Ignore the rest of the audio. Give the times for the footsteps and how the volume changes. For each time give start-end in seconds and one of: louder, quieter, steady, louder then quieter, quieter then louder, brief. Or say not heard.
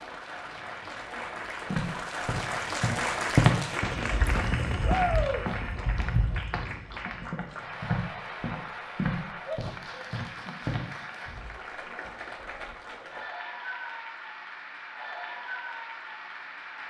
1.7-10.8 quieter.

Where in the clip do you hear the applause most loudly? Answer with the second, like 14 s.
3 s.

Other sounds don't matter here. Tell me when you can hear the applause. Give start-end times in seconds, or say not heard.
0.0-16.8.